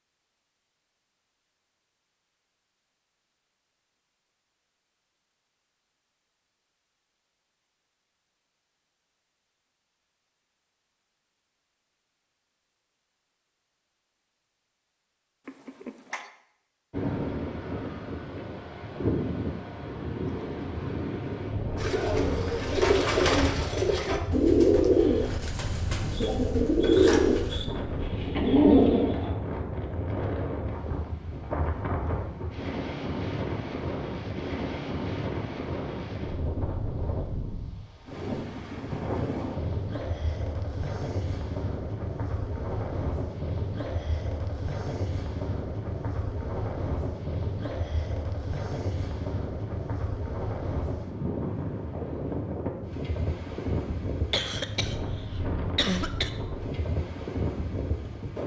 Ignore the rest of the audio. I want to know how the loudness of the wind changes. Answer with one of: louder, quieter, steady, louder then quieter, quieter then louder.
steady.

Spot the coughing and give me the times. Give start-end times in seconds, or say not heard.
15.4-16.3, 54.3-56.3.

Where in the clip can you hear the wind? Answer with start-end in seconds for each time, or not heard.
16.9-58.4.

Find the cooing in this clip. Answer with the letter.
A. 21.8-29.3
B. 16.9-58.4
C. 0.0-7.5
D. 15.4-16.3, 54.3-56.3
A.